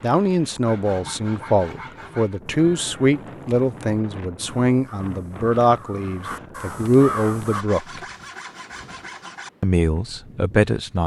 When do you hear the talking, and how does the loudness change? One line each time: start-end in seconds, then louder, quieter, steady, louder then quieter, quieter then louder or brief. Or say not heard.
0.0-8.0 steady
9.6-11.0 brief.